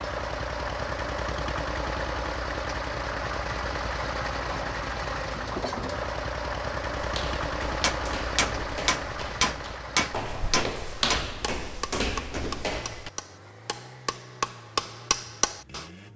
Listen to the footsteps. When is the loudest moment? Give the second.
11 s.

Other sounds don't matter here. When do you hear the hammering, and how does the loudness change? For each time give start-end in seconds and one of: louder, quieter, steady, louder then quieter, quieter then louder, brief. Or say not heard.
7.8-15.8 quieter then louder.